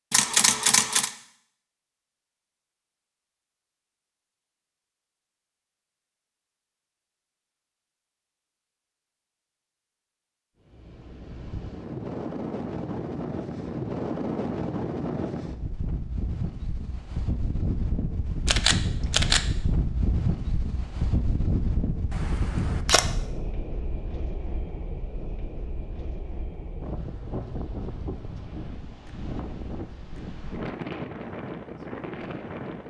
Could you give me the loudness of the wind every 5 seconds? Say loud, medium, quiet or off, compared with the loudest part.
off, off, loud, loud, loud, medium, loud.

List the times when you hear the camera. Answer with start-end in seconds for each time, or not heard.
0.1-1.1, 18.4-19.4, 22.1-23.0.